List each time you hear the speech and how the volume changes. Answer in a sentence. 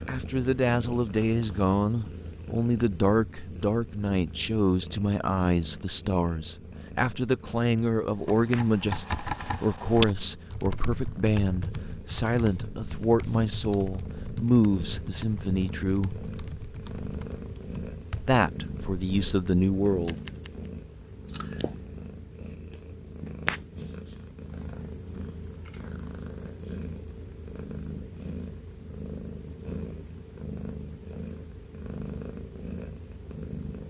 The speech can be heard from 0.1 to 16.2 s, at a steady volume; and briefly from 18.2 to 20.1 s.